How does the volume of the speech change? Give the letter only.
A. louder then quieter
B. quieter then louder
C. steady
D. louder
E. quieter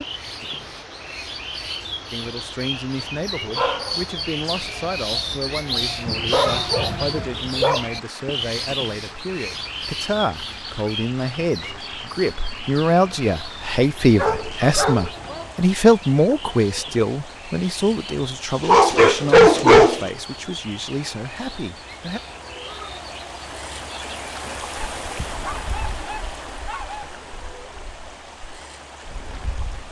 A.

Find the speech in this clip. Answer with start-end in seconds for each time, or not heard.
2.1-22.2.